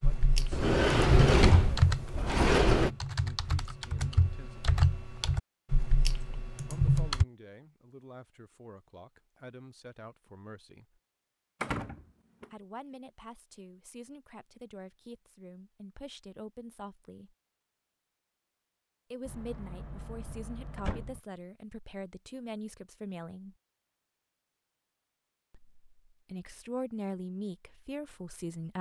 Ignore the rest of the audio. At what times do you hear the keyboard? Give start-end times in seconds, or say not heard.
0.0-7.2.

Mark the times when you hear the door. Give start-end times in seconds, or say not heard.
0.5-2.9, 11.6-12.4, 19.2-21.2.